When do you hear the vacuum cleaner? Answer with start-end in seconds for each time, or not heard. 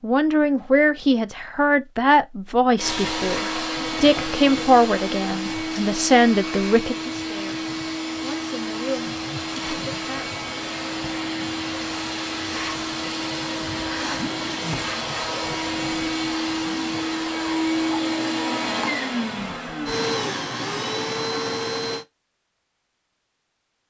2.8-22.1.